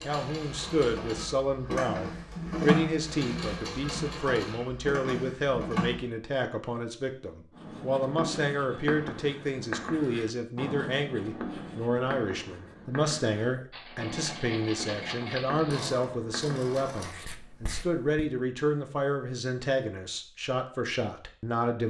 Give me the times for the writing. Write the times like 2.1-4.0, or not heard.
7.5-18.1.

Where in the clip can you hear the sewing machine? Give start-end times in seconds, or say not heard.
0.0-6.0, 13.7-17.1.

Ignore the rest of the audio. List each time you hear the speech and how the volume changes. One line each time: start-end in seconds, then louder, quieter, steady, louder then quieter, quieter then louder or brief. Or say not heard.
0.1-21.8 steady.